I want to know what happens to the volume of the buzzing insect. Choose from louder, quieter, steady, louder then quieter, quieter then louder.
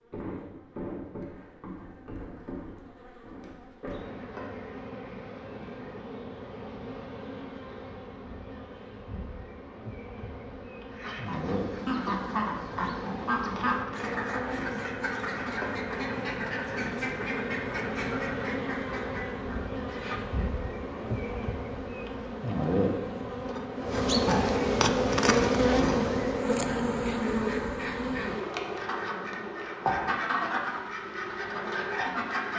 louder.